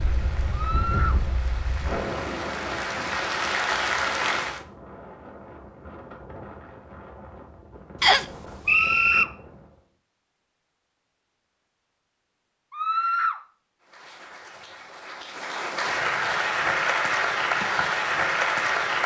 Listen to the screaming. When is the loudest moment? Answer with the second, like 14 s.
13 s.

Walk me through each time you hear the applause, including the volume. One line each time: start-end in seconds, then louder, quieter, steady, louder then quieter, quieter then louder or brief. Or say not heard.
0.0-4.7 louder
13.8-19.0 louder.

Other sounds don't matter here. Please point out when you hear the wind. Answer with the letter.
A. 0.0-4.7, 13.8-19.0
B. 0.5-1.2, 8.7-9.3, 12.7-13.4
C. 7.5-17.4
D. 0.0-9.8
D.